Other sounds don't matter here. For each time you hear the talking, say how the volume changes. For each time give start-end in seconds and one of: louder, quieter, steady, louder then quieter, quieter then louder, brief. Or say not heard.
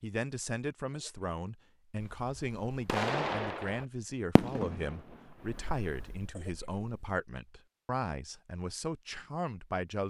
0.0-10.0 steady.